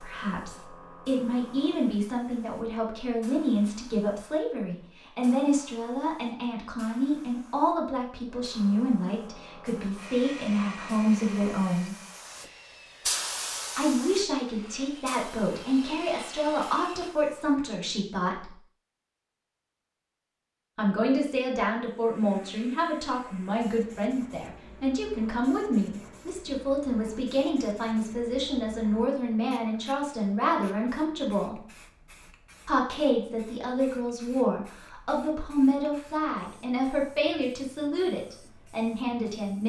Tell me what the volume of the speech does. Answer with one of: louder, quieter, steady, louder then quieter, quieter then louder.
steady.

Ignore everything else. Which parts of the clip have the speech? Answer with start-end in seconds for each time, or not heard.
0.0-11.9, 13.8-18.5, 20.8-31.6, 32.6-39.6.